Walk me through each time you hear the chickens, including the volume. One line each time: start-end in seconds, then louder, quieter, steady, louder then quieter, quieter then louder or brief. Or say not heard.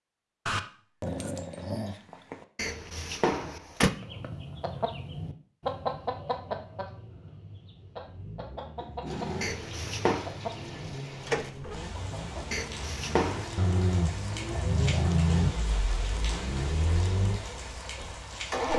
4.0-12.6 quieter then louder.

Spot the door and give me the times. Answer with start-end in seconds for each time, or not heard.
2.5-3.9, 9.4-10.3, 12.5-13.5.